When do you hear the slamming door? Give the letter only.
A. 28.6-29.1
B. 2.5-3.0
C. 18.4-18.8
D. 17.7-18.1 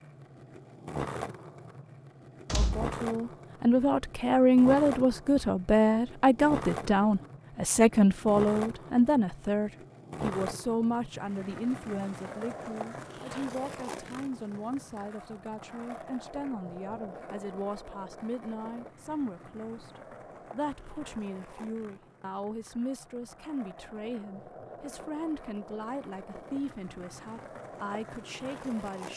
B.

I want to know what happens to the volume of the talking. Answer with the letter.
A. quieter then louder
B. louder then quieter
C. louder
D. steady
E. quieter
E.